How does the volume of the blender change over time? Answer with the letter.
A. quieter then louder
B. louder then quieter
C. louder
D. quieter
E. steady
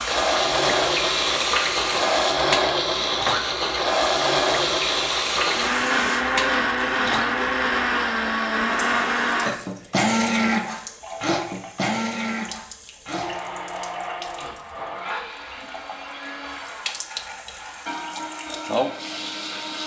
D.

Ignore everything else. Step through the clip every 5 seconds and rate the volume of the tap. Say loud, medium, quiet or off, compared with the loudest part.
loud, loud, quiet, medium.